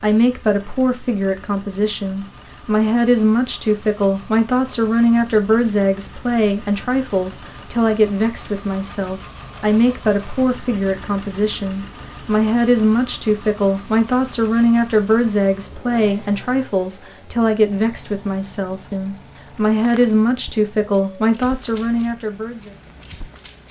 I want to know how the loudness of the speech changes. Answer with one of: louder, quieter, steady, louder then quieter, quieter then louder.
steady.